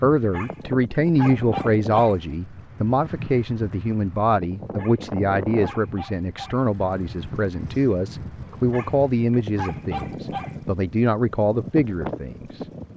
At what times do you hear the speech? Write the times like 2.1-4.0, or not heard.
0.0-12.9.